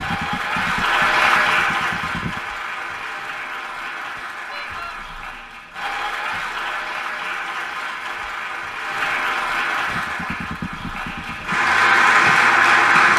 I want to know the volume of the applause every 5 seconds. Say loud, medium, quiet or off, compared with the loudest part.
medium, medium, loud.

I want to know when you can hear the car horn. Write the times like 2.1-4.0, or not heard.
4.5-5.0.